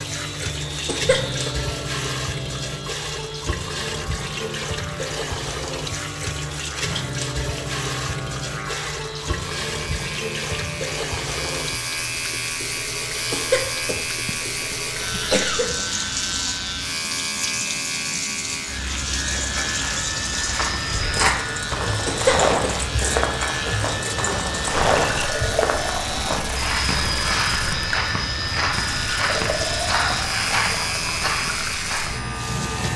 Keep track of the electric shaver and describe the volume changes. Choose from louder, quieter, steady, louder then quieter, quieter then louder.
louder.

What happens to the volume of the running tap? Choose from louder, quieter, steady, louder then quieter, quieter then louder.
steady.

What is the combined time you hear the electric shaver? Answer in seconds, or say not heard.
33 s.